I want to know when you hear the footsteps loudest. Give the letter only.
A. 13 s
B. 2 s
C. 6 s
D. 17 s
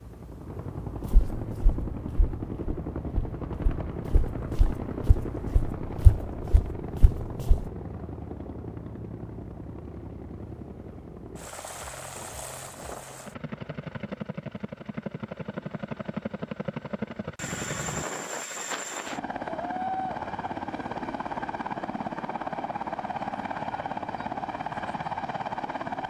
C.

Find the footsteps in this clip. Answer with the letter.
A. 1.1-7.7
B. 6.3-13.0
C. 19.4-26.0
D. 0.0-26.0
A.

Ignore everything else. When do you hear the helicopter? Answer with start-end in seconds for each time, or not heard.
0.0-26.0.